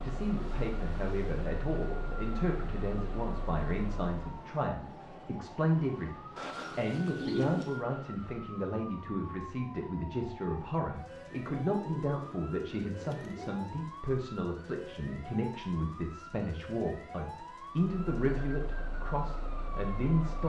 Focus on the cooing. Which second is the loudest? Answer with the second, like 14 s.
7 s.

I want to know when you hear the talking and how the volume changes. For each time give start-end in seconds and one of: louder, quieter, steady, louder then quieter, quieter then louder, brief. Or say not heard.
0.0-20.4 steady.